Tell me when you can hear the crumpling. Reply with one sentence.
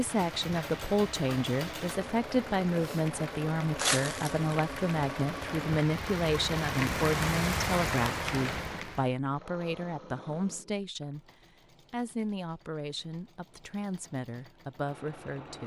You can hear the crumpling from 3.8 to 4.8 s.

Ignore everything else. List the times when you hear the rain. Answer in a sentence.
The rain can be heard from 0.0 to 9.2 s.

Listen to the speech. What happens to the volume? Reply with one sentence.
The volume of the speech goes down.